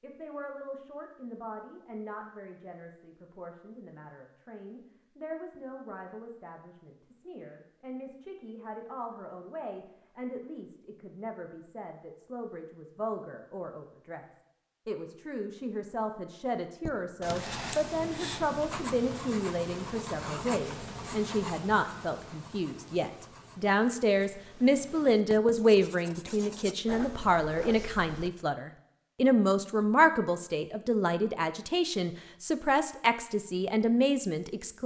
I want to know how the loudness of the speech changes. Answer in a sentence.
The loudness of the speech goes up.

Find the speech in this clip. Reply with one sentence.
The speech can be heard from 0.0 to 14.2 s and from 14.8 to 34.8 s.